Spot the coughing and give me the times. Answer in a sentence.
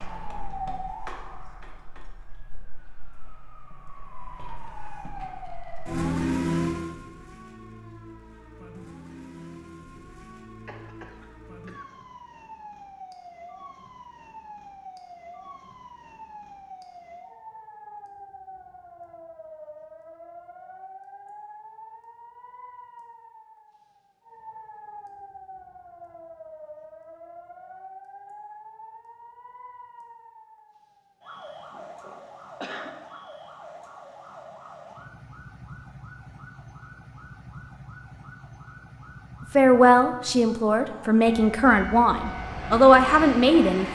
The coughing can be heard from 10.7 to 11.8 s and from 31.7 to 33.0 s.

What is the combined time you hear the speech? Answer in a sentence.
You can hear the speech for 4 seconds altogether.